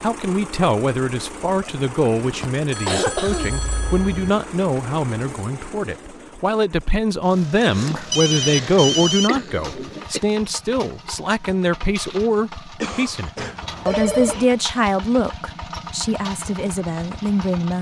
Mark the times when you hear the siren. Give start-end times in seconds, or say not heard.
not heard.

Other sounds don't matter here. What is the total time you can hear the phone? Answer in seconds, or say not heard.
5 s.